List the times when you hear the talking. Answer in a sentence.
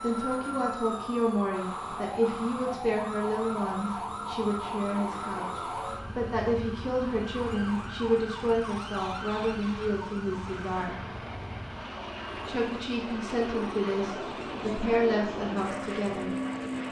You can hear the talking from 0.0 to 11.0 s and from 12.4 to 16.4 s.